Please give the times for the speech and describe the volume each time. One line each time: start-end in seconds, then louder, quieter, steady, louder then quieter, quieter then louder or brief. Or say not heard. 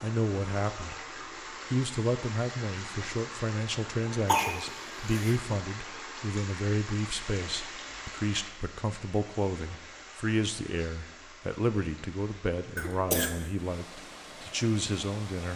0.0-1.1 brief
1.7-15.5 steady.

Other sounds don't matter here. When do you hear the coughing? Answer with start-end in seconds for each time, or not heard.
4.2-5.3, 12.8-13.3.